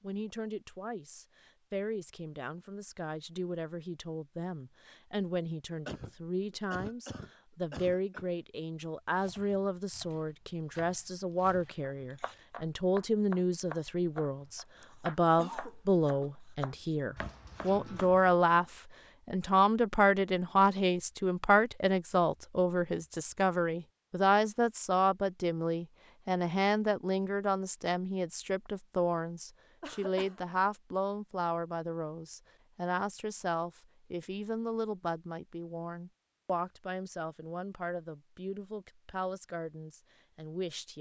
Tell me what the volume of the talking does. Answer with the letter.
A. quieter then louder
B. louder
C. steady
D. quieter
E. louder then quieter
E.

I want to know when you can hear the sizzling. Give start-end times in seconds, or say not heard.
not heard.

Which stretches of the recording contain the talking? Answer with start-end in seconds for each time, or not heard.
0.0-40.9.